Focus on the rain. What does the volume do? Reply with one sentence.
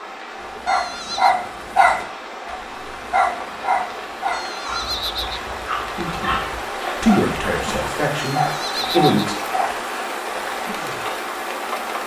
The volume of the rain goes up.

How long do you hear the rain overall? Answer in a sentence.
The rain can be heard for 12 seconds in total.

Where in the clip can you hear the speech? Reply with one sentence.
The speech can be heard from 5.9 to 9.3 s.